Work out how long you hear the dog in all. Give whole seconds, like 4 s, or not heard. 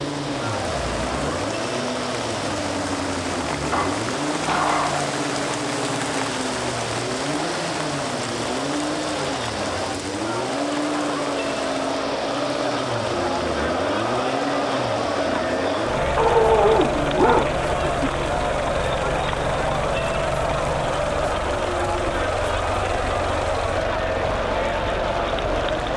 3 s.